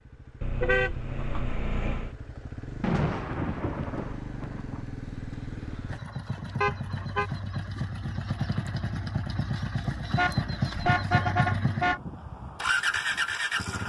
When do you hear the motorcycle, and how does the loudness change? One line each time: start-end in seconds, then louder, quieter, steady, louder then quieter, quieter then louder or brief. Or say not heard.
0.0-13.8 louder.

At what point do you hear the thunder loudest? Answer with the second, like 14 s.
3 s.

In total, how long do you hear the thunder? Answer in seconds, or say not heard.
2 s.